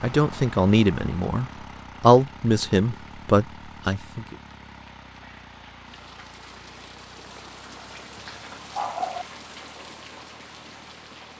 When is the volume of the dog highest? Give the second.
9 s.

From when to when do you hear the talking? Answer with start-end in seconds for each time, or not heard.
0.0-4.3.